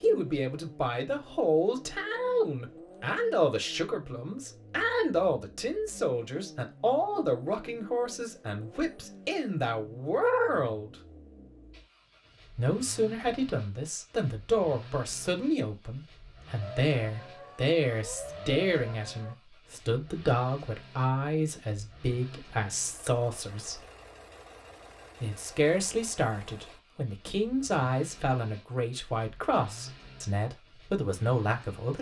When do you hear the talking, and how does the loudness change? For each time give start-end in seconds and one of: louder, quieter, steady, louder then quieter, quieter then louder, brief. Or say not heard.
0.0-10.9 steady
12.6-23.9 steady
25.2-31.9 steady.